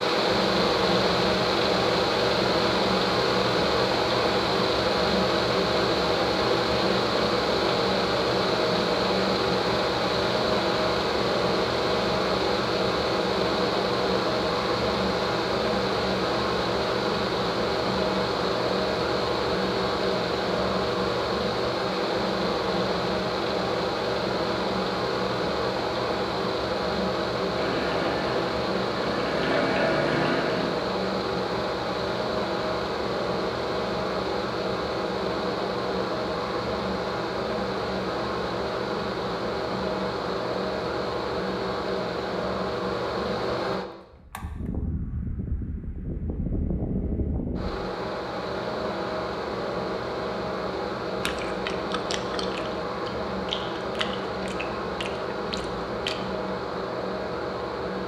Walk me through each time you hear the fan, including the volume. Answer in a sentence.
You can hear the fan from 0.0 to 58.0 s, getting quieter.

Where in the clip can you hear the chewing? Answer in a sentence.
The chewing can be heard from 51.2 to 56.1 s.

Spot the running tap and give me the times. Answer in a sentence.
You can hear the running tap from 27.5 to 30.9 s.